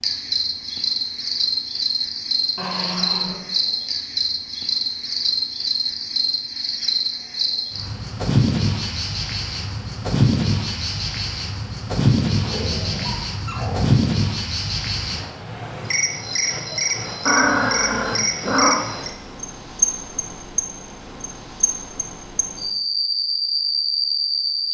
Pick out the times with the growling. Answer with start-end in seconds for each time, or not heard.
2.5-3.4, 12.4-14.0, 17.2-18.8.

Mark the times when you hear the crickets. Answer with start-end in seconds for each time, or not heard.
0.0-24.6.